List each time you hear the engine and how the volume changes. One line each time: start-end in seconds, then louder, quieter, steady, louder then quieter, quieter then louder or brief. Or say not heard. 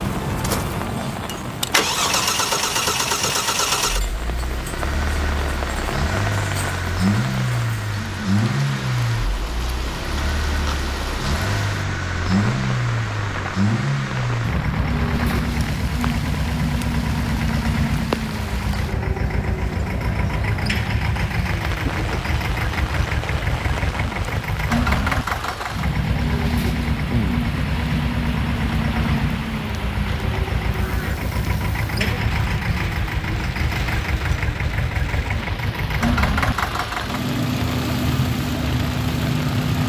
0.0-39.8 steady.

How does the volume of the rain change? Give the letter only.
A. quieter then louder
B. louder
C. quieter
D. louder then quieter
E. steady
E.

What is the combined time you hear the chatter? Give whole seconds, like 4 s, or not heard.
not heard.